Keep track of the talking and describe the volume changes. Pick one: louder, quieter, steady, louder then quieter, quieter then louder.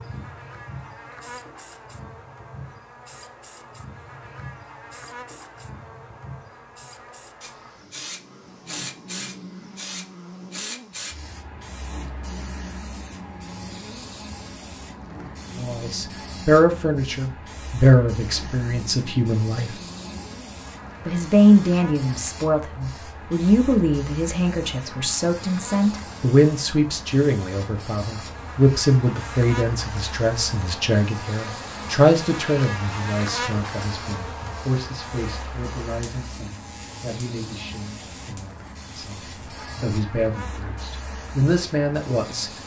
quieter.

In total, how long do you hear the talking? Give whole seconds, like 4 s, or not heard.
26 s.